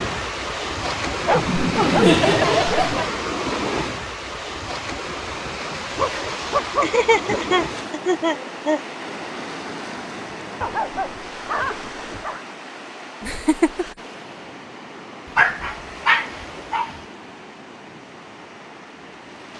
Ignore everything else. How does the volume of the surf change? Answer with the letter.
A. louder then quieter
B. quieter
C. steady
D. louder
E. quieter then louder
B.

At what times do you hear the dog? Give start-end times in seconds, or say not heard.
1.1-2.1, 6.0-7.4, 10.6-12.4, 15.3-16.9.